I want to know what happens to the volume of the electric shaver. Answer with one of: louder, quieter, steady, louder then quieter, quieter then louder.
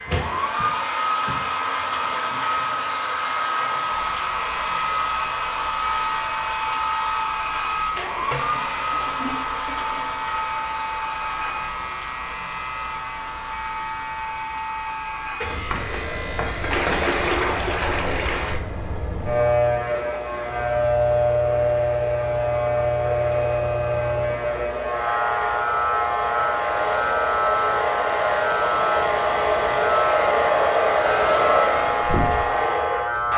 louder.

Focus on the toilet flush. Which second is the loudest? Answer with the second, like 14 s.
17 s.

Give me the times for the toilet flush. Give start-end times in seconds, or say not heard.
8.2-10.2, 16.7-18.6.